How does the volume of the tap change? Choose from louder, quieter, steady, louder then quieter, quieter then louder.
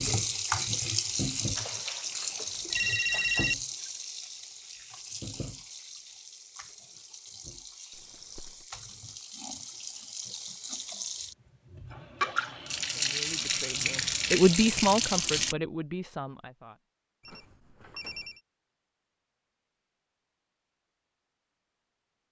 quieter then louder.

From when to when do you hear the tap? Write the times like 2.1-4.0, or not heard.
0.0-15.6.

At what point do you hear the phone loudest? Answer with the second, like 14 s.
3 s.